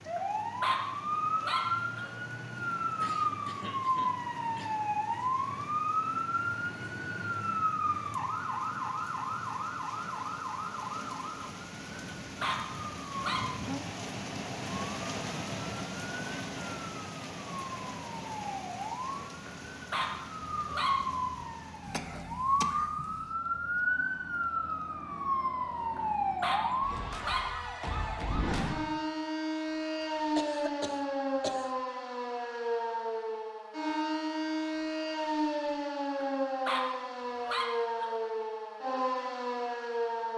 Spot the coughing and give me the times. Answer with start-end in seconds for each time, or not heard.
3.0-4.8, 21.8-23.4, 30.4-31.8.